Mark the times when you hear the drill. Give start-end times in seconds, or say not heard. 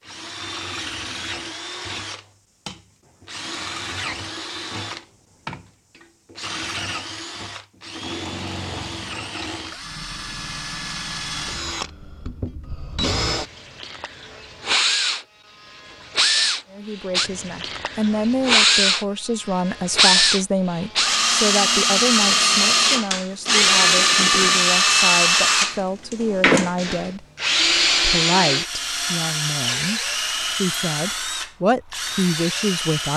0.0-33.1.